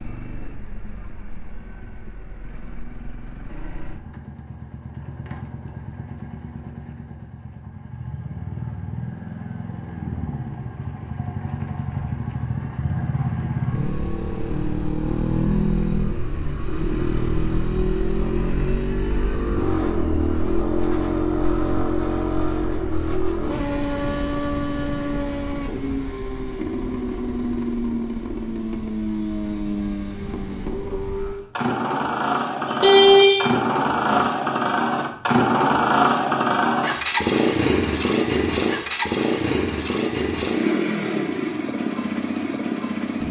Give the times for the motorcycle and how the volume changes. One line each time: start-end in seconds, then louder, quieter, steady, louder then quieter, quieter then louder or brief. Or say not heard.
0.0-43.2 louder.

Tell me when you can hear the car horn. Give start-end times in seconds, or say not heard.
32.6-34.2.